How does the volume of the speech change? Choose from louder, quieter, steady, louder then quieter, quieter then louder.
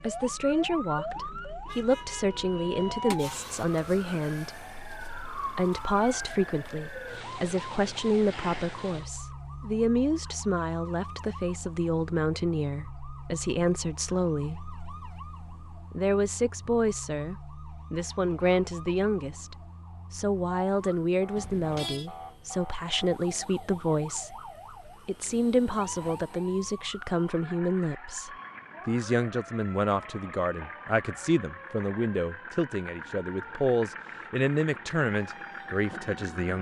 steady.